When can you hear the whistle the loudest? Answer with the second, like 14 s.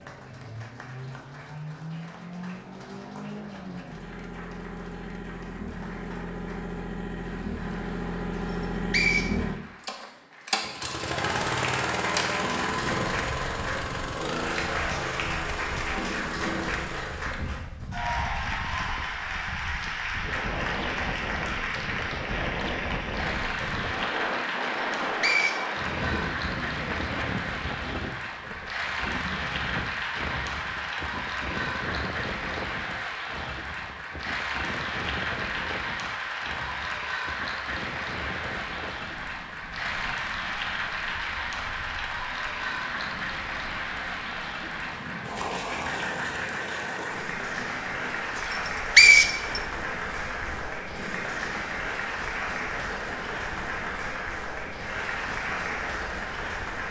49 s.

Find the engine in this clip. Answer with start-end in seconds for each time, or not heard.
0.0-17.4.